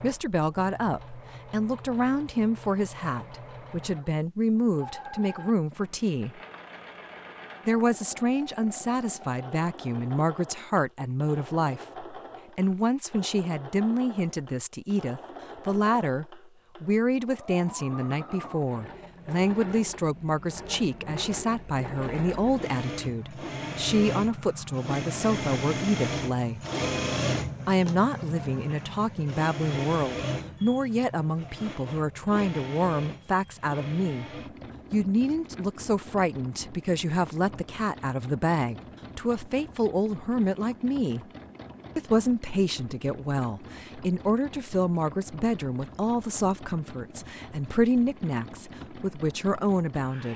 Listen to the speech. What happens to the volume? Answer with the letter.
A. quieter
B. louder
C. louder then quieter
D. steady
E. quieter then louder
D.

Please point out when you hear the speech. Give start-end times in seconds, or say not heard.
0.0-6.4, 7.7-26.6, 27.6-34.2, 34.9-41.2, 42.0-50.3.